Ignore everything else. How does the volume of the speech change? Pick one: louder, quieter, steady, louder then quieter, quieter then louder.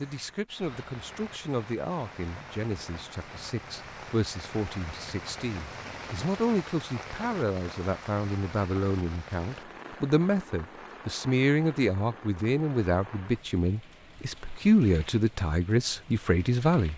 louder.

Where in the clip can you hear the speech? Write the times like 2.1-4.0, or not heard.
0.0-16.9.